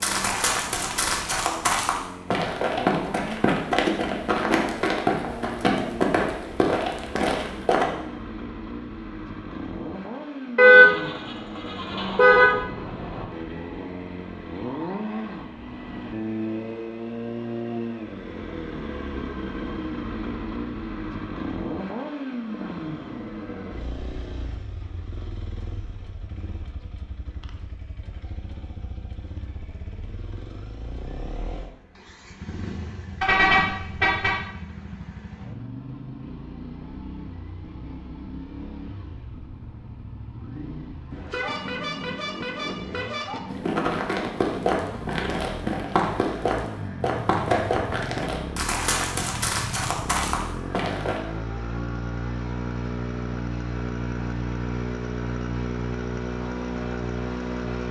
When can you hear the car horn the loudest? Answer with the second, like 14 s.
11 s.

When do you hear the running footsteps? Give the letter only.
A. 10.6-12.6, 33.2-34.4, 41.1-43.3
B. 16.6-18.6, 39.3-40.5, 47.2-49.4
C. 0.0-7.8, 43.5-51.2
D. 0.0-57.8
C.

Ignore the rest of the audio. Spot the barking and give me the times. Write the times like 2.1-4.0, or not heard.
not heard.